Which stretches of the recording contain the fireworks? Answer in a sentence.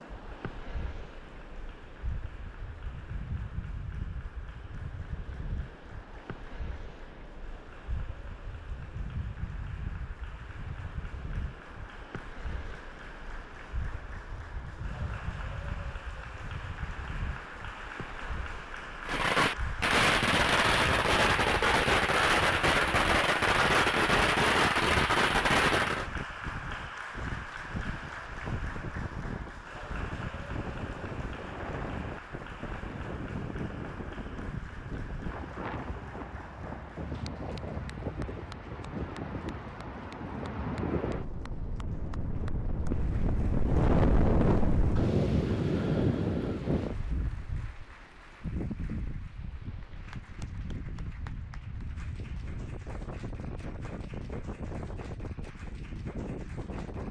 The fireworks can be heard from 19.1 to 26.1 s.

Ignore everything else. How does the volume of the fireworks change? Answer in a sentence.
The volume of the fireworks stays about the same.